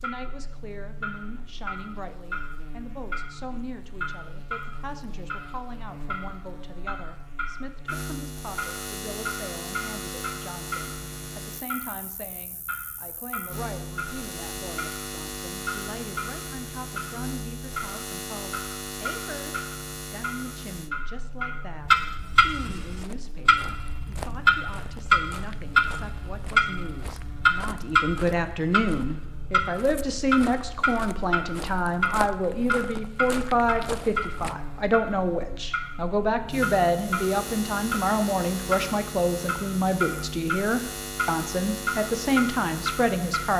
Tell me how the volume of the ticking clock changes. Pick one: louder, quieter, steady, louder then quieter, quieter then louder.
louder then quieter.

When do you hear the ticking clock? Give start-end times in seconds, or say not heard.
0.0-43.5.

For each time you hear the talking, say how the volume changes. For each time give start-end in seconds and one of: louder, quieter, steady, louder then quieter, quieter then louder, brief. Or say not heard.
0.0-43.5 louder.